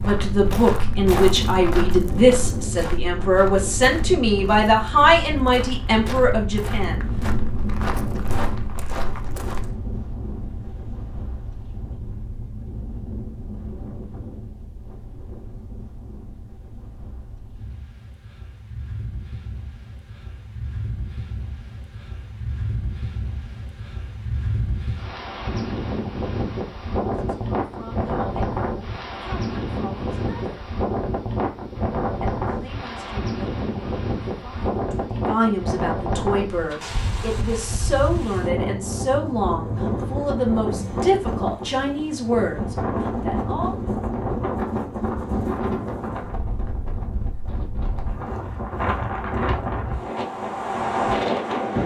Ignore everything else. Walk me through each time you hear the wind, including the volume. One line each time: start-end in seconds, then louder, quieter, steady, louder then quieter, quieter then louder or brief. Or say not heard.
0.0-51.8 quieter then louder.